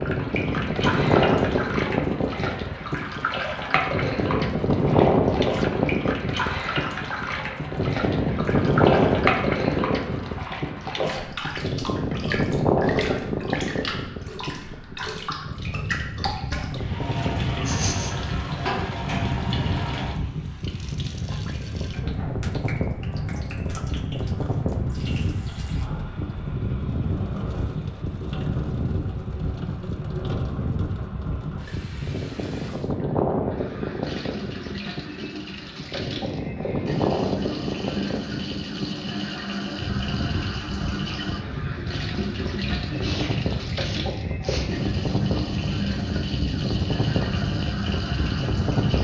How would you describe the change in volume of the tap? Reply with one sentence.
The loudness of the tap goes down, then up.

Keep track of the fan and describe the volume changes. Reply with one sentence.
The loudness of the fan goes down.